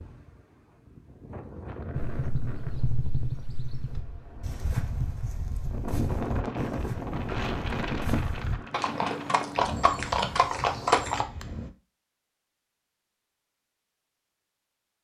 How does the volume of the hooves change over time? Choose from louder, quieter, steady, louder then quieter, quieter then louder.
louder.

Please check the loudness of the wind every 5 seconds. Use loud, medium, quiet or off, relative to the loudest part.
medium, loud, medium.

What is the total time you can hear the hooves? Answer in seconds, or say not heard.
9 s.